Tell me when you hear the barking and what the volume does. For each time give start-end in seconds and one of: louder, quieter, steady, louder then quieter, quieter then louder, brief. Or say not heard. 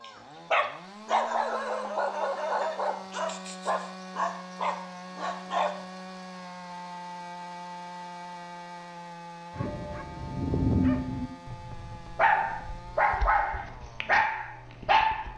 0.0-5.8 quieter
9.6-15.3 quieter then louder.